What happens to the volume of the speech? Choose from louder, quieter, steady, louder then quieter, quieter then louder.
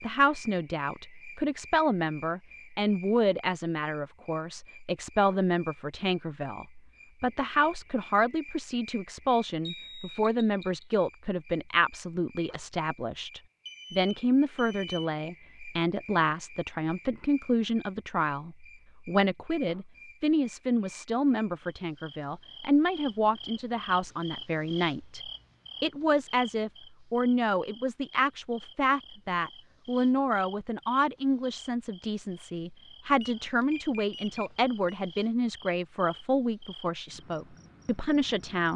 steady.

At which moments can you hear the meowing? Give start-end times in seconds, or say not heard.
not heard.